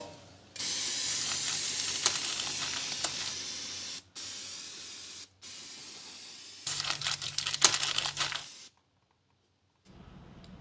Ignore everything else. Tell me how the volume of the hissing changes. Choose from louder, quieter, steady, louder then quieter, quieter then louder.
quieter.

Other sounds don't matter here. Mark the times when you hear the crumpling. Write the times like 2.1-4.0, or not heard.
1.1-3.4, 6.7-8.4.